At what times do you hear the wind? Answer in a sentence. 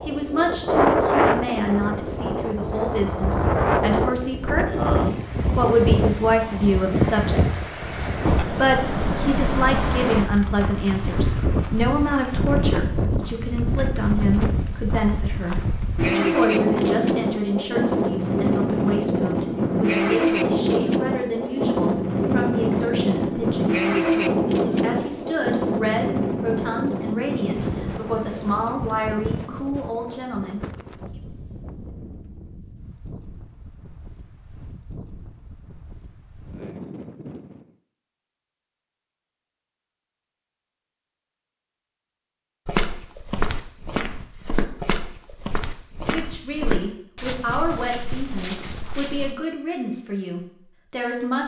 You can hear the wind from 0.0 to 37.8 s.